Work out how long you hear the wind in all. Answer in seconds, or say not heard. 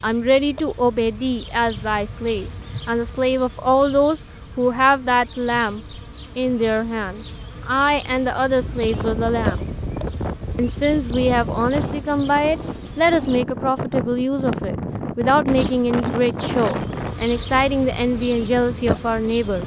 11 s.